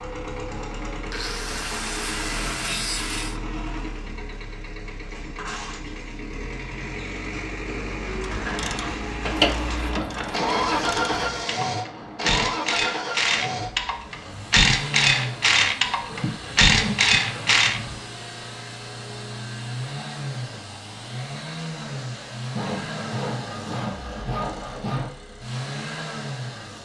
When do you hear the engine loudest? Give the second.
11 s.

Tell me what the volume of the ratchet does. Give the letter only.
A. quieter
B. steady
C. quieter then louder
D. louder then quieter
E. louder
C.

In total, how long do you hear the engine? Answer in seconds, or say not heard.
27 s.